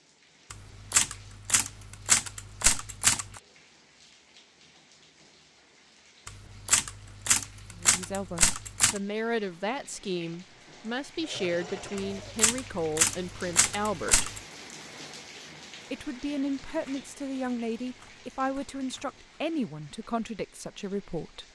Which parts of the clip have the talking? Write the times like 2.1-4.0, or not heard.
7.8-14.3, 15.9-21.4.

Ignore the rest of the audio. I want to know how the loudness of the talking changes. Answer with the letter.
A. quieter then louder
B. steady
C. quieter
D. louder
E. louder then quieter
B.